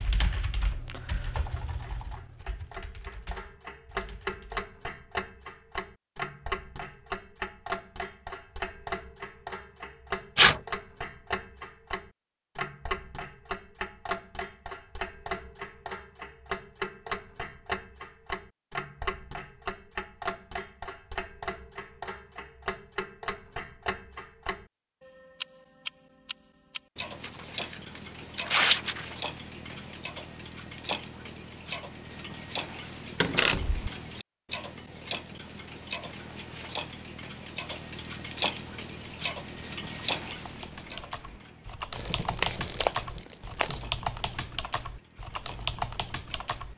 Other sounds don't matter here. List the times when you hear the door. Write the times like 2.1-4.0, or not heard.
33.2-33.9.